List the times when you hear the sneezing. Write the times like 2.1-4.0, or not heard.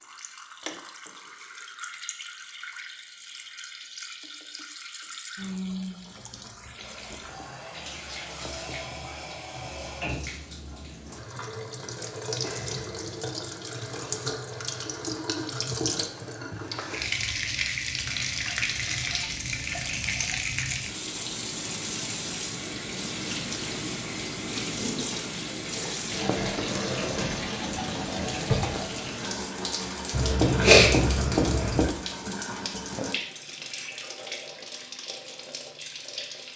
30.1-31.9.